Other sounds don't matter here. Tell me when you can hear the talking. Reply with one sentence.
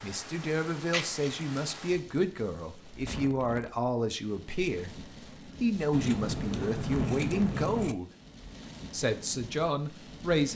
The talking can be heard from 0.0 to 8.1 s and from 8.9 to 10.5 s.